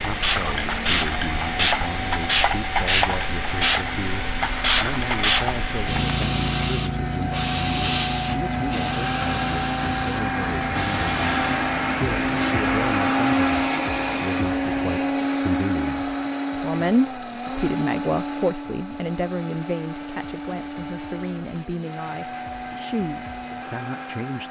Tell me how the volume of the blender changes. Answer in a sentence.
The loudness of the blender goes up, then down.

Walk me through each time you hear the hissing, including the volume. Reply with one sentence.
You can hear the hissing from 0.0 to 12.6 s, getting quieter.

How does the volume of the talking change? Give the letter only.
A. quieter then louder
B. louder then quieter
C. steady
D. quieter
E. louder
B.